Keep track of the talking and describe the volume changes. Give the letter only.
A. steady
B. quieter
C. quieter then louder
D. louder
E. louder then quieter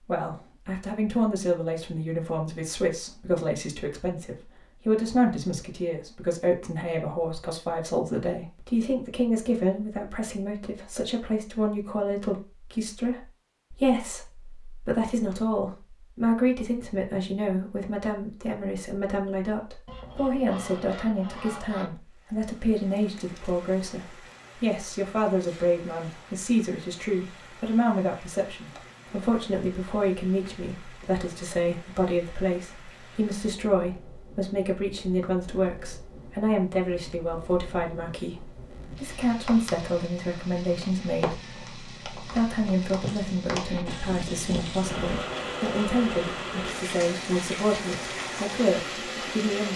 A.